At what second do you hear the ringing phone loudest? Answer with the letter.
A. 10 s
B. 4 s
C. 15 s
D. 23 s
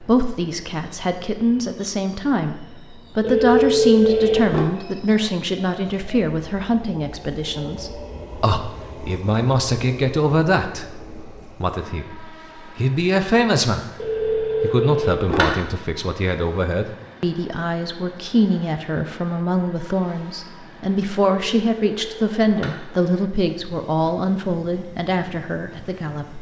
B.